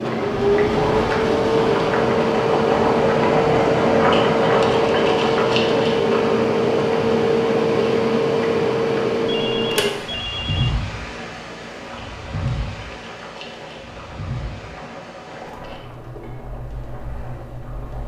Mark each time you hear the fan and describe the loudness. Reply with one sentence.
You can hear the fan from 0.0 to 18.0 s, getting quieter.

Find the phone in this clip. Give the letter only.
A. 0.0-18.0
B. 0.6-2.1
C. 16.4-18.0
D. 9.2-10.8
D.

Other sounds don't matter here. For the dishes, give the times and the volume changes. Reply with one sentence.
You can't hear the dishes here.